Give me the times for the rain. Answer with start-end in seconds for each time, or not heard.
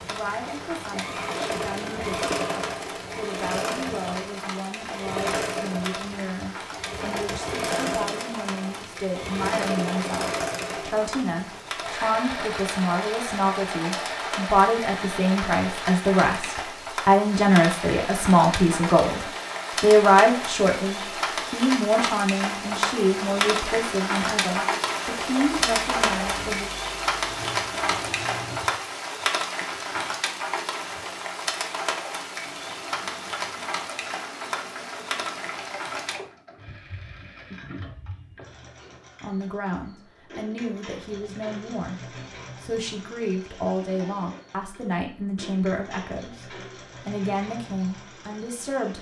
0.0-36.2.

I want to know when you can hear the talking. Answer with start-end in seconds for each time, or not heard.
0.1-26.6, 39.2-48.9.